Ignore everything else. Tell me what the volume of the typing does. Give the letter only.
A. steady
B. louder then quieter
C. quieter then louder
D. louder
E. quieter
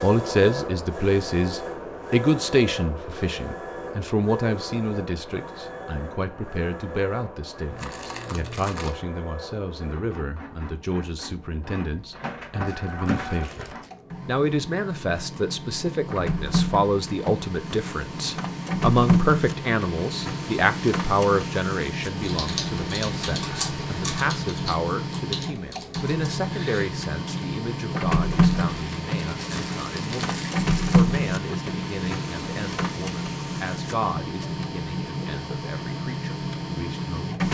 E.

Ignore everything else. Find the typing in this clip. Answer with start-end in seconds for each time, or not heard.
22.1-27.5.